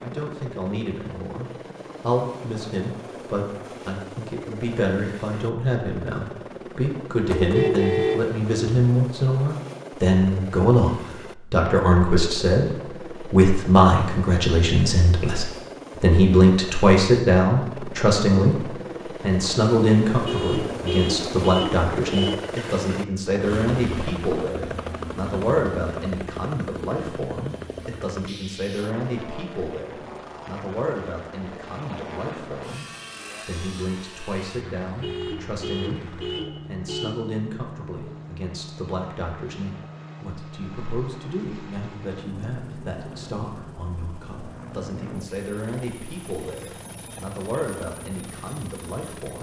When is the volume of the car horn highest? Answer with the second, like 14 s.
8 s.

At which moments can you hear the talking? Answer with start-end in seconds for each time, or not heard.
0.0-49.3.